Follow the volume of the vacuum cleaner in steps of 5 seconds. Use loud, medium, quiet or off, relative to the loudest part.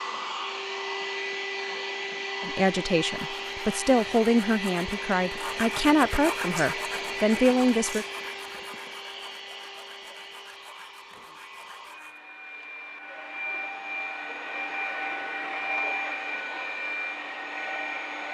loud, loud, medium, loud.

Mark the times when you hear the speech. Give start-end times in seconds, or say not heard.
2.4-8.1.